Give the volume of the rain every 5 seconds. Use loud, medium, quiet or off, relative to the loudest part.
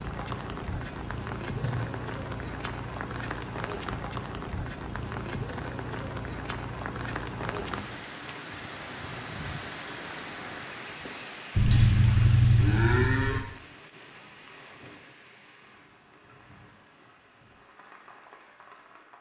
loud, loud, medium, quiet.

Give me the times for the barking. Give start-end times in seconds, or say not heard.
not heard.